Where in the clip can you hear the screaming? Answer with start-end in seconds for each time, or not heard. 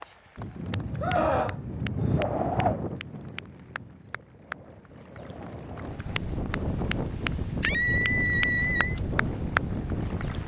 1.0-2.2, 7.6-9.0.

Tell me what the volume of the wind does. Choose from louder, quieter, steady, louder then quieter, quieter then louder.
quieter then louder.